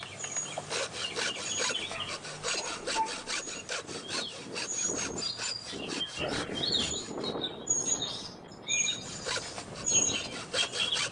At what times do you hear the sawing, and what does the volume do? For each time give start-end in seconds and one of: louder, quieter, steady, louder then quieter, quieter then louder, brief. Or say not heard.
0.0-7.3 quieter
8.8-11.0 brief.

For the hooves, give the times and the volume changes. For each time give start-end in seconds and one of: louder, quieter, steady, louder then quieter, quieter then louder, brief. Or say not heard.
not heard.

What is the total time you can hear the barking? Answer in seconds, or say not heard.
2 s.